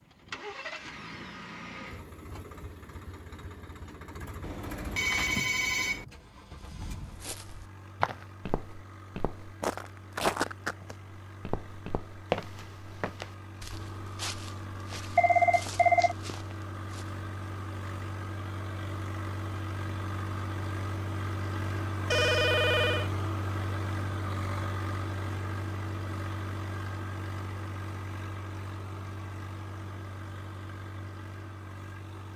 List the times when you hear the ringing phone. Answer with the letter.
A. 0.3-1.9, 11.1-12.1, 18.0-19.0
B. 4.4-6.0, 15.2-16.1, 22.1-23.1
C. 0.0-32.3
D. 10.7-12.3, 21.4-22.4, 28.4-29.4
B.